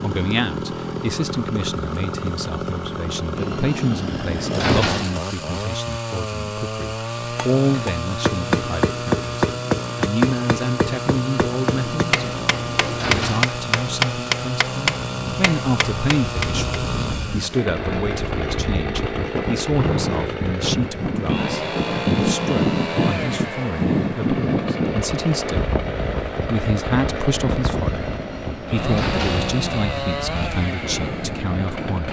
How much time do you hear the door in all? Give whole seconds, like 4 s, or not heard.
5 s.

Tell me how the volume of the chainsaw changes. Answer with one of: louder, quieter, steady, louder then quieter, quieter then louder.
steady.